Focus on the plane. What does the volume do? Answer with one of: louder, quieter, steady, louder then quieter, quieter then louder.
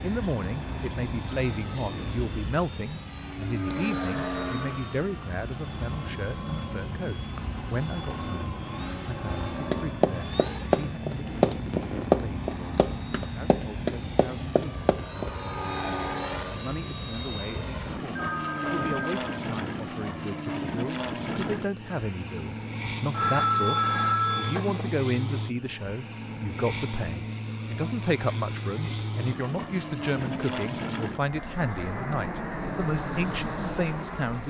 steady.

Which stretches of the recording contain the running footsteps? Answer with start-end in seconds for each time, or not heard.
9.7-15.3.